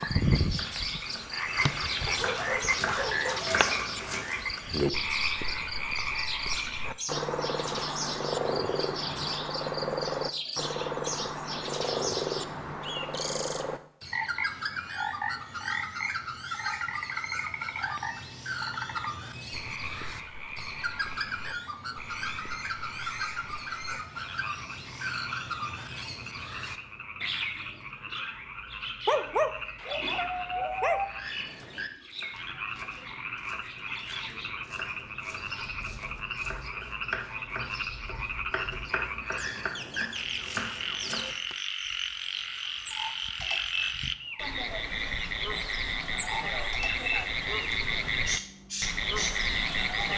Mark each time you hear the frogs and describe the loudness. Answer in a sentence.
You can hear the frogs from 0.0 to 50.1 s, getting quieter then louder.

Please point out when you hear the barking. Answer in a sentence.
The barking can be heard from 2.0 to 3.9 s and from 29.1 to 31.1 s.